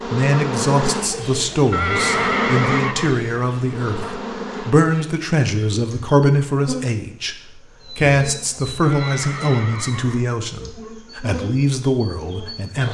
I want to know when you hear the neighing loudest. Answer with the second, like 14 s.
2 s.